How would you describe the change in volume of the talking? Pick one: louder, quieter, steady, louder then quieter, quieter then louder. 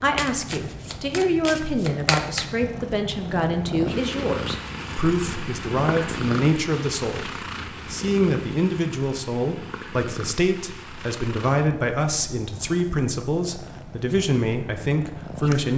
steady.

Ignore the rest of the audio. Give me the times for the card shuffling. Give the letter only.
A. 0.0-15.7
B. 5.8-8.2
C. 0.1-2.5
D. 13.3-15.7
C.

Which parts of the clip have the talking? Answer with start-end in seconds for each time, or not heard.
0.0-15.7.